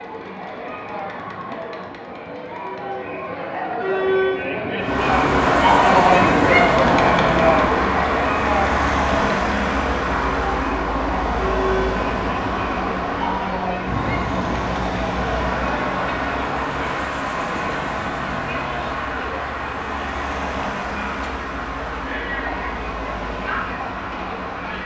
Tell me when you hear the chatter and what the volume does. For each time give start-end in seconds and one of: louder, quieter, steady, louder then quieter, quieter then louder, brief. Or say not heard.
0.0-24.8 louder then quieter.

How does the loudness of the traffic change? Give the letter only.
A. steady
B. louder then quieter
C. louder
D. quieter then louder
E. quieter
E.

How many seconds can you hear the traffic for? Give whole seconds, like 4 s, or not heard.
20 s.